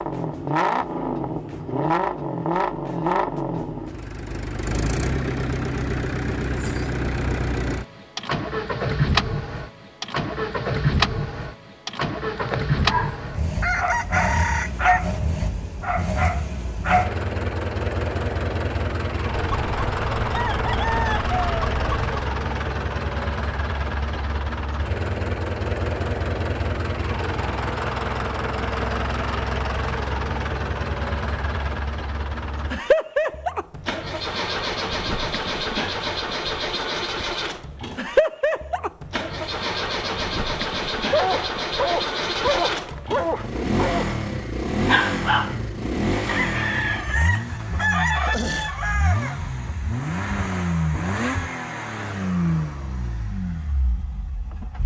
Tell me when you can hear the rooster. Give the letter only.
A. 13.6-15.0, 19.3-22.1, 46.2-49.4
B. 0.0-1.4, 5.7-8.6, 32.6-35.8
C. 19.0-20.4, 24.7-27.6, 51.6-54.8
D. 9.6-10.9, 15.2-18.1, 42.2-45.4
A.